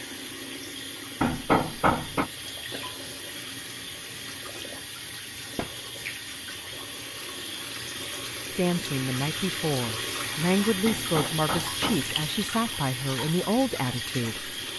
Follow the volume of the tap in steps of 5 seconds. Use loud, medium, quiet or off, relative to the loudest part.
medium, loud, loud.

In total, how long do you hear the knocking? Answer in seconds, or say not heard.
3 s.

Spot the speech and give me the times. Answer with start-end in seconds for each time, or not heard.
8.6-14.5.